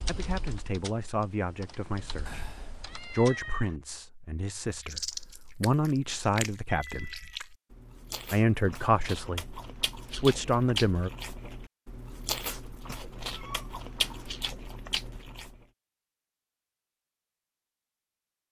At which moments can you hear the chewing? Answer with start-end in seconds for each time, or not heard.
4.8-15.7.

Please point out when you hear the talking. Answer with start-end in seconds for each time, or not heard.
0.1-7.2, 8.3-11.1.